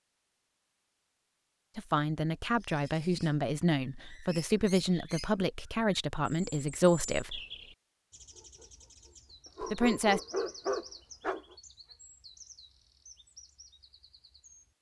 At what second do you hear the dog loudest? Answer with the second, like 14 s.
11 s.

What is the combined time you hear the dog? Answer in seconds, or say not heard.
3 s.